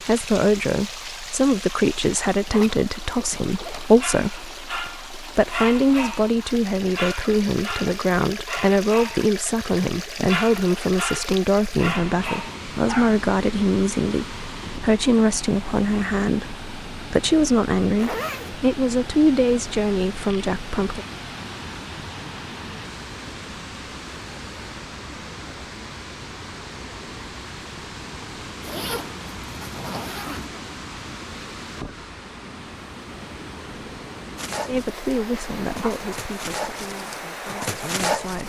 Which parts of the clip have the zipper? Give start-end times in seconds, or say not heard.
2.5-3.9, 17.9-18.6, 28.6-30.5.